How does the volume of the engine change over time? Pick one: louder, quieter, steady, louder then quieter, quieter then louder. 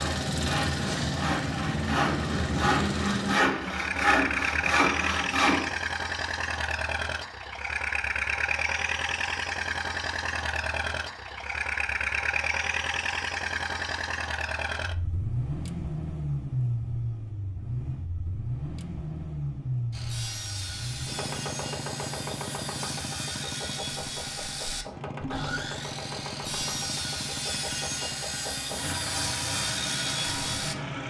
quieter.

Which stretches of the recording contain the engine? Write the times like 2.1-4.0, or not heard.
0.0-31.0.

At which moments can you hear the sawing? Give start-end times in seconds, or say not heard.
0.0-5.7, 19.9-30.8.